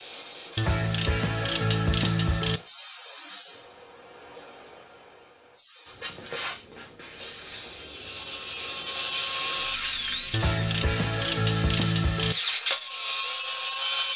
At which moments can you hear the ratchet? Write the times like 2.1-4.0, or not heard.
0.6-2.6, 10.3-12.3.